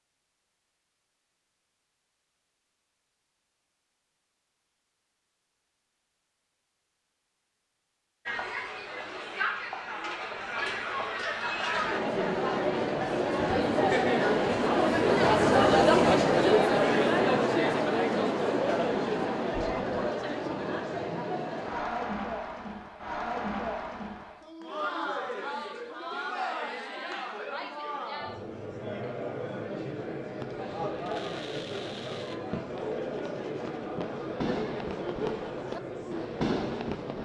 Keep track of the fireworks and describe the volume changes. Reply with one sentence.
The loudness of the fireworks goes up.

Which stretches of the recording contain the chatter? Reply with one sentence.
The chatter can be heard from 8.2 to 37.2 s.